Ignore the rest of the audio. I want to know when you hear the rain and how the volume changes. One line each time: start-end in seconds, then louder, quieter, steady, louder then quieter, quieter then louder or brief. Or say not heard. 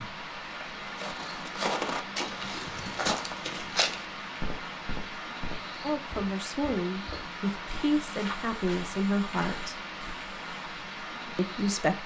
0.0-12.0 steady.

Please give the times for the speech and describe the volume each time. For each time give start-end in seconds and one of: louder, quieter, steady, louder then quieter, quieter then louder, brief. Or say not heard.
5.8-9.8 steady
11.3-12.0 brief.